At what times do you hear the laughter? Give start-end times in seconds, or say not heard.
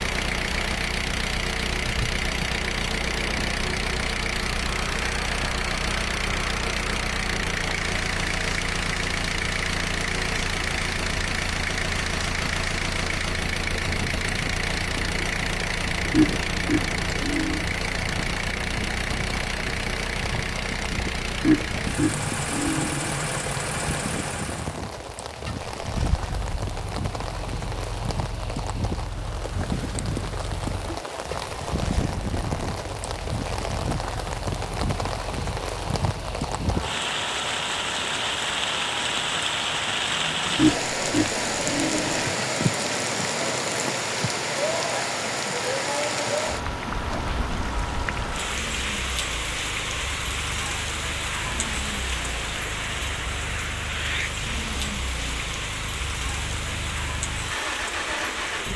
16.1-17.6, 21.4-23.1, 40.5-42.2.